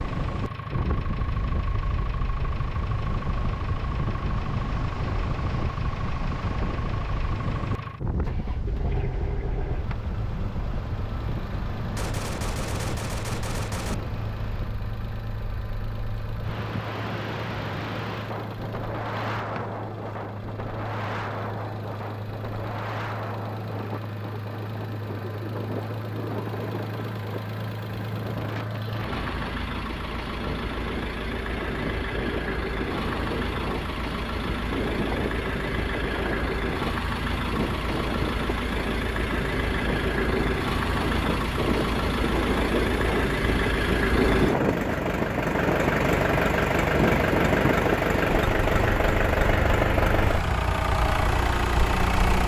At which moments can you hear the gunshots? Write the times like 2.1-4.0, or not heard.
11.9-13.9.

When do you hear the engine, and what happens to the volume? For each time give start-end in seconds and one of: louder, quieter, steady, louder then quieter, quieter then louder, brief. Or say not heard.
0.0-52.4 louder.